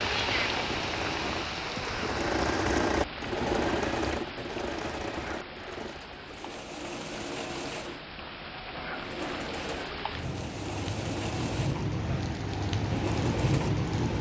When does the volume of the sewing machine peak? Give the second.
3 s.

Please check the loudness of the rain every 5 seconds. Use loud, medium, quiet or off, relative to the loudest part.
loud, medium, loud.